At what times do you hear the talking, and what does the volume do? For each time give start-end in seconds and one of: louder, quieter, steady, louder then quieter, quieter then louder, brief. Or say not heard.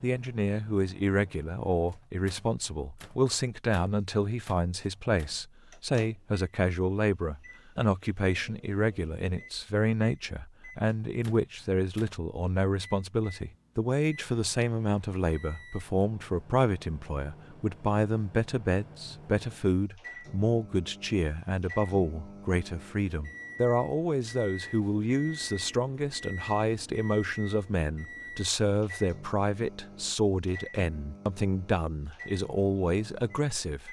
0.0-33.8 steady.